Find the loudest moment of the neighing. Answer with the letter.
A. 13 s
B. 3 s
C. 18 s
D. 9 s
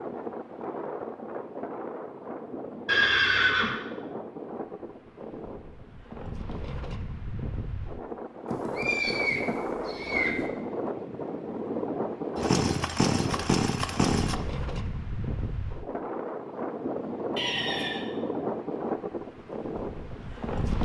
B.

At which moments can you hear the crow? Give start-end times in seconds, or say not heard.
not heard.